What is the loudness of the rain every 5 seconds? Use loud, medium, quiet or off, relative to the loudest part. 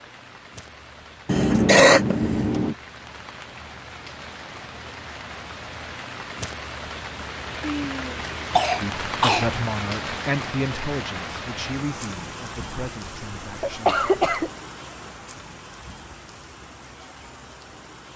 medium, loud, loud, medium.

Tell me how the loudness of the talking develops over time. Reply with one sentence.
The volume of the talking goes down.